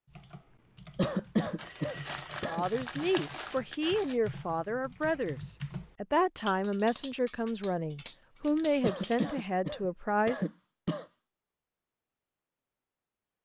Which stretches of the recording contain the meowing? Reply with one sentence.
You can't hear the meowing here.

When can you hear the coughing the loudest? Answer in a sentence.
The volume of the coughing peaks at 1 second.